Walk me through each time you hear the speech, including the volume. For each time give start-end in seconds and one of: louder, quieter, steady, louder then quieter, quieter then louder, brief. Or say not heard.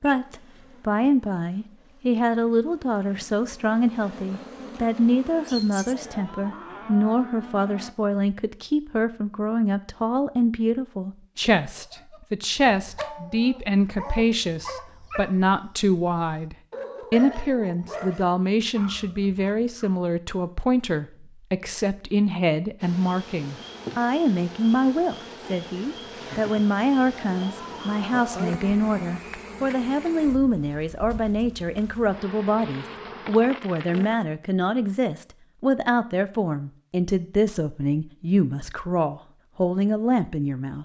0.0-40.8 steady.